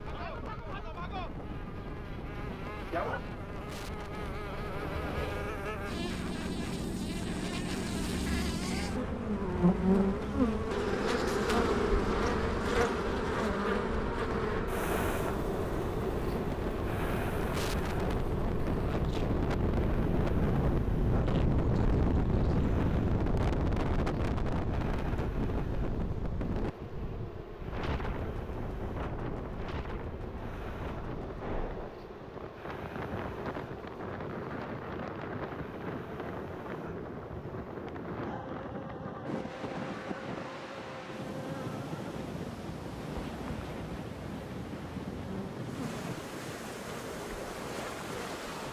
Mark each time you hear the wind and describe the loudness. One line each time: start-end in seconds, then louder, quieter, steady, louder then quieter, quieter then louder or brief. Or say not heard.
0.0-48.6 louder then quieter.